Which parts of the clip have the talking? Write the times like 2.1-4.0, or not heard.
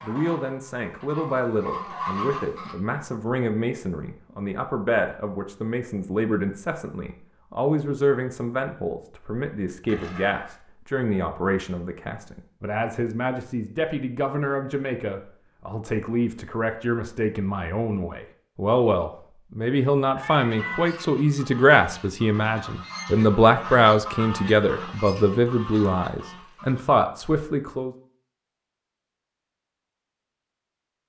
0.0-27.9.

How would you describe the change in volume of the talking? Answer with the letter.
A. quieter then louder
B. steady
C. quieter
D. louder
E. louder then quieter
D.